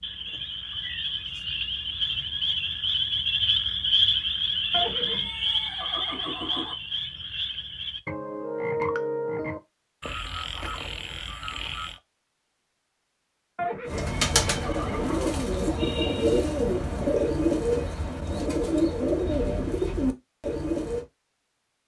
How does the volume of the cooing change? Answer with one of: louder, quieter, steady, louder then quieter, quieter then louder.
steady.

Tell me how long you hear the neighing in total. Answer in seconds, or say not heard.
4 s.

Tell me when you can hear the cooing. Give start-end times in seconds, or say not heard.
13.8-21.1.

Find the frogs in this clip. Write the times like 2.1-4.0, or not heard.
0.0-12.0.